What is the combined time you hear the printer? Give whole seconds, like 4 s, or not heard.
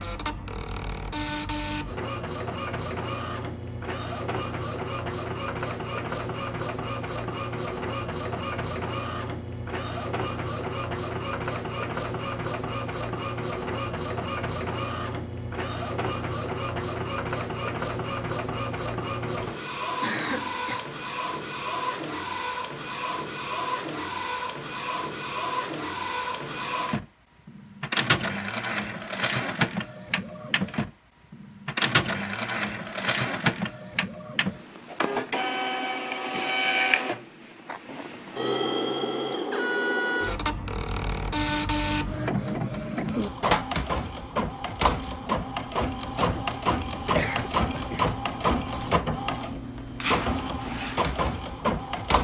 52 s.